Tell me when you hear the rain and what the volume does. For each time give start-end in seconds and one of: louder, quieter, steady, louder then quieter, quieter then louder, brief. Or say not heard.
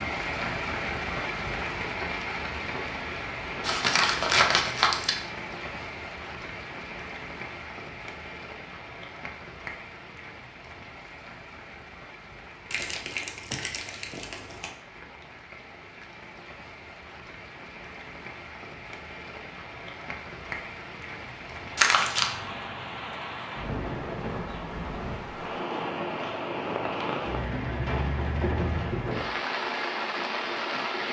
0.0-31.0 quieter then louder.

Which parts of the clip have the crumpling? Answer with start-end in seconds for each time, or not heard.
3.6-5.2, 12.7-14.7, 21.8-22.3.